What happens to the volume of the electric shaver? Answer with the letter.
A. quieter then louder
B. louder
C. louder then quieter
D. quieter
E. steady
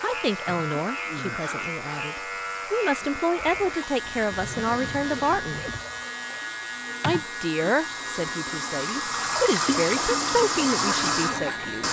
E.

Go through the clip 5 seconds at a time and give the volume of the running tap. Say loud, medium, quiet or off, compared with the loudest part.
quiet, medium, loud.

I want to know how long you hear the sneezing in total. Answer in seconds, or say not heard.
2 s.